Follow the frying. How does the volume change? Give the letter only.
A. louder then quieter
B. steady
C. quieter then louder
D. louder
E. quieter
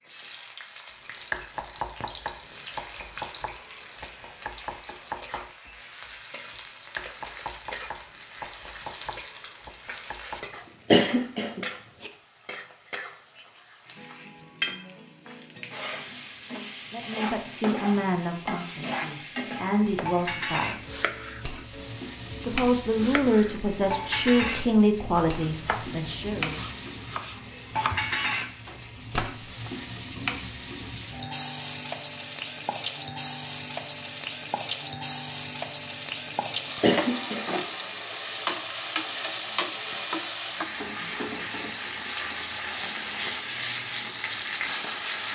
D.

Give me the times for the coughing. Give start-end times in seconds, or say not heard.
10.9-12.1, 36.8-37.5.